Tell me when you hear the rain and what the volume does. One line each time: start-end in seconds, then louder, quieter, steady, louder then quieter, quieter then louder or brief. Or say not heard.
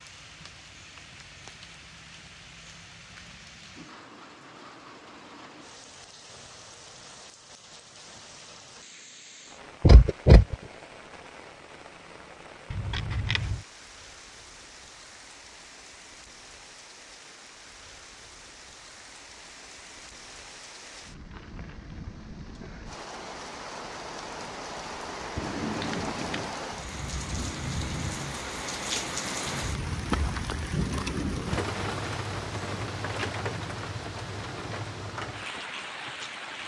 0.0-36.6 louder.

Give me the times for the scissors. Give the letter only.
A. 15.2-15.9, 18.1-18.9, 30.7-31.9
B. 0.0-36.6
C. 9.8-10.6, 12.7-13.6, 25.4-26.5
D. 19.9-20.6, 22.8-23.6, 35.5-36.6
C.